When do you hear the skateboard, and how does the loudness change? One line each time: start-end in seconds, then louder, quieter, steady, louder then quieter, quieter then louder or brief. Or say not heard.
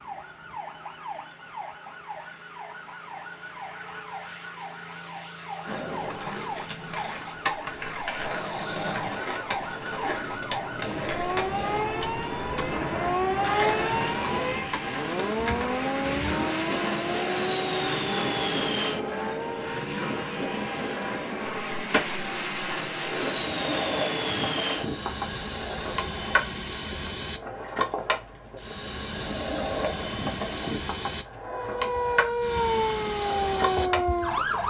5.6-34.6 steady.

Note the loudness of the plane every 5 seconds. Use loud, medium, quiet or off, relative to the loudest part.
quiet, medium, medium, loud, loud, loud, loud.